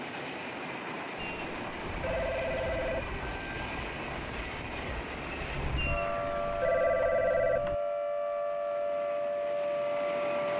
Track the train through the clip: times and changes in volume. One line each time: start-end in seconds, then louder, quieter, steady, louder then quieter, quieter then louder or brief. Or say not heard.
0.0-10.5 quieter.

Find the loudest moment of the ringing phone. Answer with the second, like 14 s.
7 s.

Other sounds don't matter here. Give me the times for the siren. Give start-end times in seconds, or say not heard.
2.0-10.5.